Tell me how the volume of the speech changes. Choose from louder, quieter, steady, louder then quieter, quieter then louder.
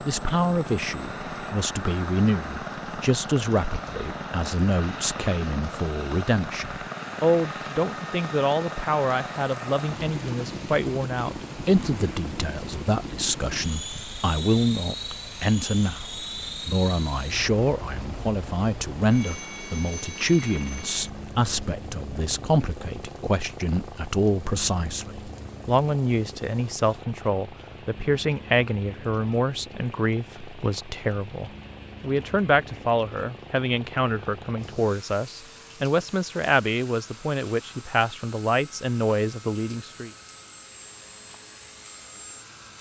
steady.